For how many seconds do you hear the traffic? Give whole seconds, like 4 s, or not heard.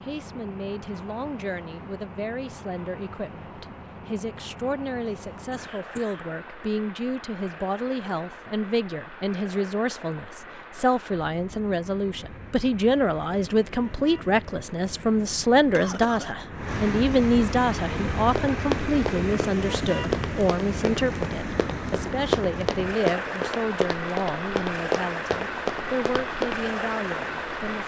28 s.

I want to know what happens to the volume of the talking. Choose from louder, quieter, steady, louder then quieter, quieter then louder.
louder then quieter.